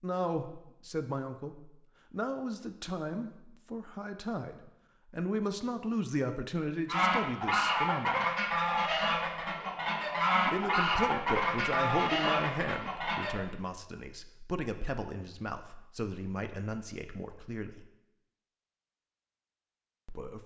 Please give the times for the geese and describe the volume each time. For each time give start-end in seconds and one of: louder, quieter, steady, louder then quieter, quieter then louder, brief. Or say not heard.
6.8-13.4 steady.